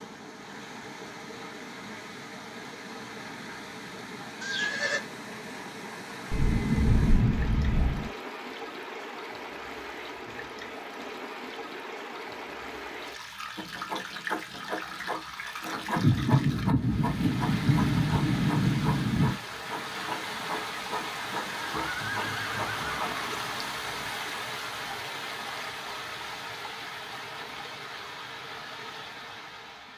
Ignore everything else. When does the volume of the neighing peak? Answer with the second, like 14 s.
5 s.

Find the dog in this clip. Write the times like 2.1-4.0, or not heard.
not heard.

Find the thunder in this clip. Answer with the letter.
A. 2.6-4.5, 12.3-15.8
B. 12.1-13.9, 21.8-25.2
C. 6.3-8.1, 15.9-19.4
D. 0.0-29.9
C.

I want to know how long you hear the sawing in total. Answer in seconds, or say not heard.
11 s.